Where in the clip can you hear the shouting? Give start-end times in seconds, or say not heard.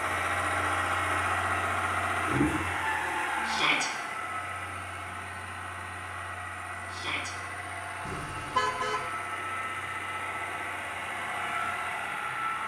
3.5-3.9, 6.9-7.3.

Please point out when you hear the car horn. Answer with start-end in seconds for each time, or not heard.
8.1-9.1.